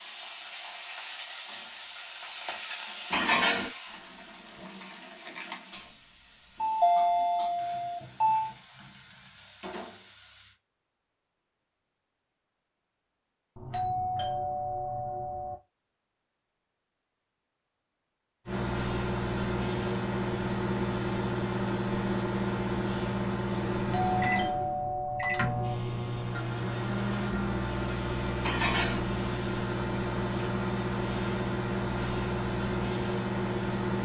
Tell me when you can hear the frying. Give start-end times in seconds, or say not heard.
0.0-10.6.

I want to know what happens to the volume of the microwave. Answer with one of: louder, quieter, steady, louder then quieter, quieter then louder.
steady.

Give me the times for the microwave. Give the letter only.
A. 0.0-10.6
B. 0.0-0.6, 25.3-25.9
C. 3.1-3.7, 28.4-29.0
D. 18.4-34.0
D.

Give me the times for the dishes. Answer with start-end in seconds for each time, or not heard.
3.1-3.7, 28.4-29.0.